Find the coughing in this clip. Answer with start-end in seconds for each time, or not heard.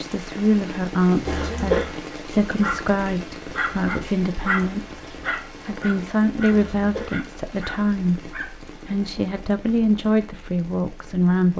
1.2-1.9, 6.5-7.2.